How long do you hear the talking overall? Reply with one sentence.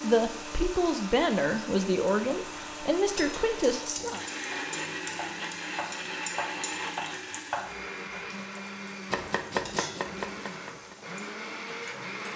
The talking can be heard for 4 seconds in total.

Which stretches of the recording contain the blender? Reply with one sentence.
You can hear the blender from 0.0 to 12.3 s.